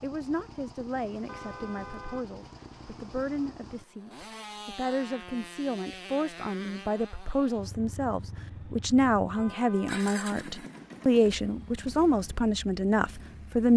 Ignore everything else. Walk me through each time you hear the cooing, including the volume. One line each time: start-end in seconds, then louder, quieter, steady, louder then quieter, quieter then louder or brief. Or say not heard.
not heard.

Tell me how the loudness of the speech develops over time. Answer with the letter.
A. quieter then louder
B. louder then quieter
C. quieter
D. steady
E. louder
E.